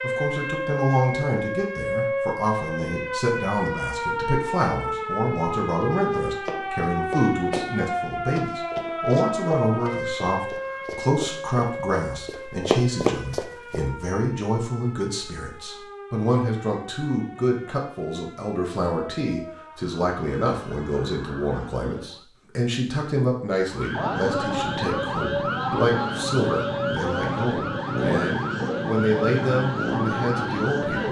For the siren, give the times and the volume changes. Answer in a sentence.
You can hear the siren from 0.0 to 22.2 s, getting quieter; and from 23.7 to 31.0 s, at a steady volume.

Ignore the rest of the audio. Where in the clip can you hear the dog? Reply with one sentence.
You can't hear the dog here.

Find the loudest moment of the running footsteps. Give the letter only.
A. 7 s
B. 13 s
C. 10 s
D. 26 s
B.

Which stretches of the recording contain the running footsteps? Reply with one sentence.
You can hear the running footsteps from 5.9 to 7.7 s and from 8.3 to 13.8 s.